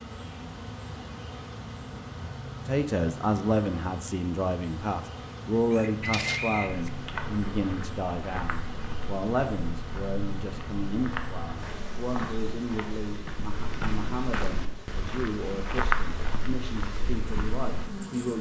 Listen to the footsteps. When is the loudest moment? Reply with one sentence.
The loudest moment of the footsteps is at 16 seconds.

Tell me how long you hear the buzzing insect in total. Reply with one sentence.
The buzzing insect can be heard for 18 seconds in total.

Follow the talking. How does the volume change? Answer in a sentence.
The volume of the talking goes down.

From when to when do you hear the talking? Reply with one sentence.
You can hear the talking from 2.6 to 18.3 s.